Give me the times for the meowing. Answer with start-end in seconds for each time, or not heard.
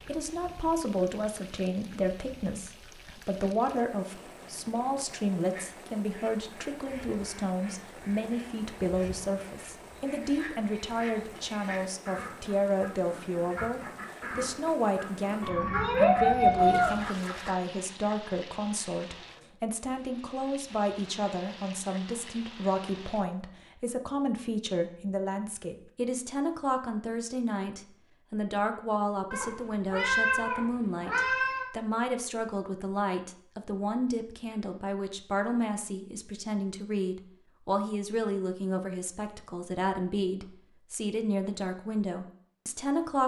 4.2-5.3, 15.4-17.1, 29.3-31.7.